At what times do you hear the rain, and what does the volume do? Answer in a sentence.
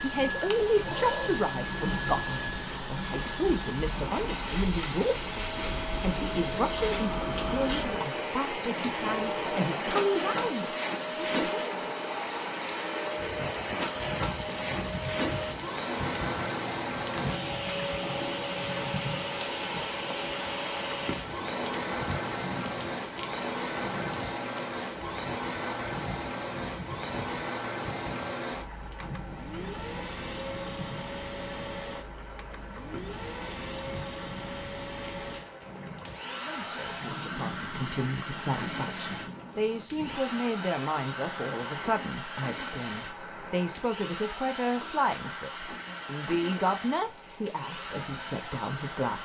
The rain can be heard from 0.0 to 49.2 s, getting quieter.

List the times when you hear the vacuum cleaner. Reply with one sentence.
The vacuum cleaner can be heard from 0.0 to 49.2 s.